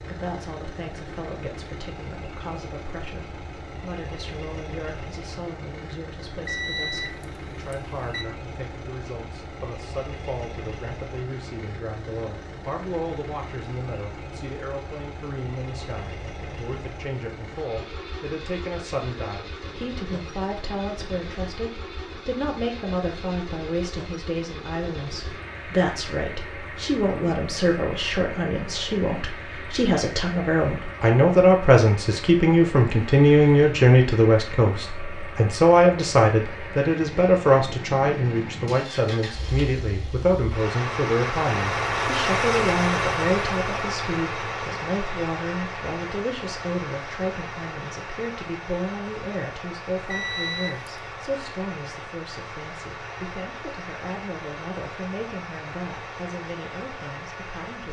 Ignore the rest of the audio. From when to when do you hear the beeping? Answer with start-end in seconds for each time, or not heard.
6.5-8.2, 50.1-50.9.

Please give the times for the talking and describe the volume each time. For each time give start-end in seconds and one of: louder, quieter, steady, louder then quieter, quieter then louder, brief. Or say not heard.
0.0-57.8 louder then quieter.